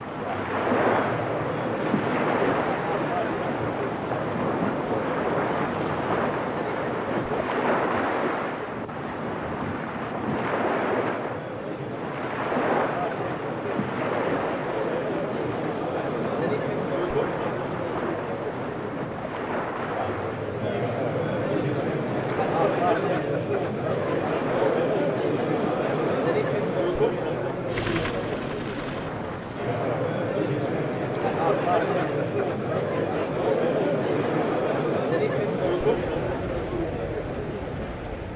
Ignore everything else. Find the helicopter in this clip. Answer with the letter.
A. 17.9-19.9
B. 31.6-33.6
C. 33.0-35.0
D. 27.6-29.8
D.